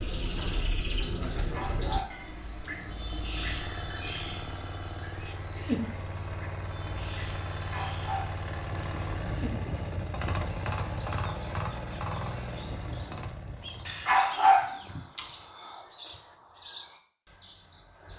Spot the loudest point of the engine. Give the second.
11 s.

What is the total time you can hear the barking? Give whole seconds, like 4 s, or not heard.
4 s.